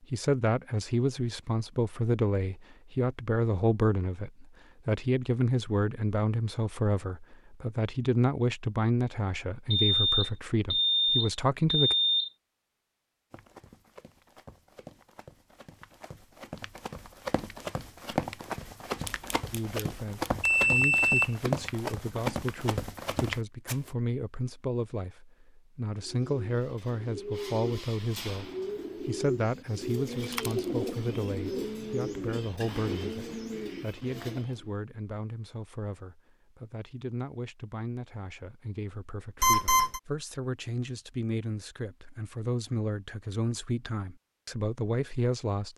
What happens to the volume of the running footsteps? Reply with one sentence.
The volume of the running footsteps goes up.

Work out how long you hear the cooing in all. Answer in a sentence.
You can hear the cooing for 9 seconds altogether.